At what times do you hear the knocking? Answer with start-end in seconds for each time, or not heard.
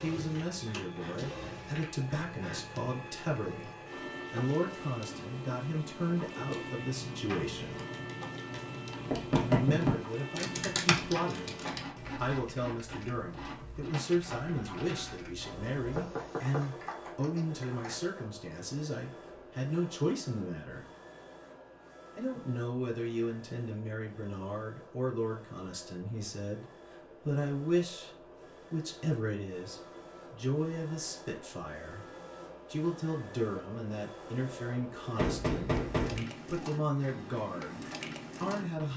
9.1-9.9, 15.9-16.8, 35.1-36.2.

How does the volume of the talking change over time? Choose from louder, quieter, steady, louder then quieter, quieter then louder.
steady.